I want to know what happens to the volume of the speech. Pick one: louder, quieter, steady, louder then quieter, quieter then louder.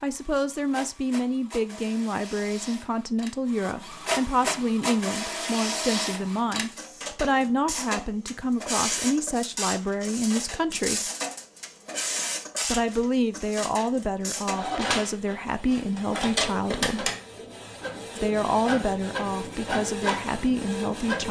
steady.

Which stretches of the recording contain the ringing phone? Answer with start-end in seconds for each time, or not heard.
not heard.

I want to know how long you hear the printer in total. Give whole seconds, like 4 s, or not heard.
21 s.